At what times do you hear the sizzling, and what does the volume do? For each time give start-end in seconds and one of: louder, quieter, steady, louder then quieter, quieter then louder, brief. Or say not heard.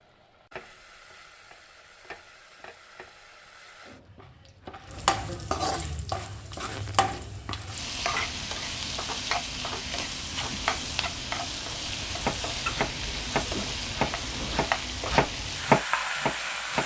0.0-16.8 louder.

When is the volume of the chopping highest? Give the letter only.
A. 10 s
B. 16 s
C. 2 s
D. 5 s
B.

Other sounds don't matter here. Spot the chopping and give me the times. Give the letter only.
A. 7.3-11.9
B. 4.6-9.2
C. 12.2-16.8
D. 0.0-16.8
C.